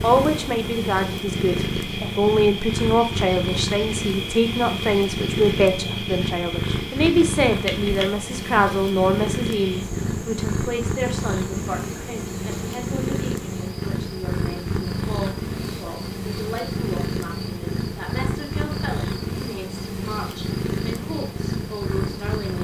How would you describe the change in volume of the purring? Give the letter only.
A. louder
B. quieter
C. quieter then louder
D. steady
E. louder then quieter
D.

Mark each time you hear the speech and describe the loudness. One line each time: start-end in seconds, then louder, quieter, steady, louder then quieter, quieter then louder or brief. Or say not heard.
0.0-22.5 quieter.